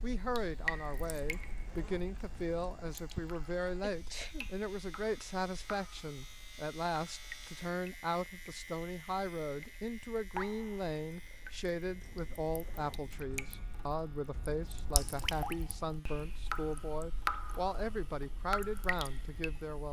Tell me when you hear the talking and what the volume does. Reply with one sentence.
You can hear the talking from 0.0 to 19.8 s, at a steady volume.